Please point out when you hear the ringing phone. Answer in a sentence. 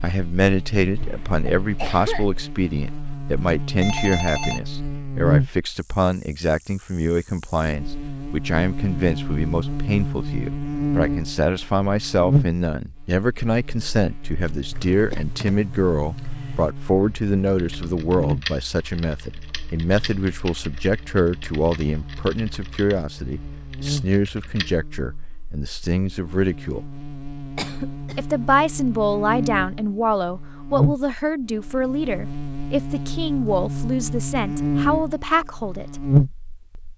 The ringing phone can be heard from 3.8 to 4.6 s.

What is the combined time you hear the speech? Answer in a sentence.
The speech can be heard for 35 seconds in total.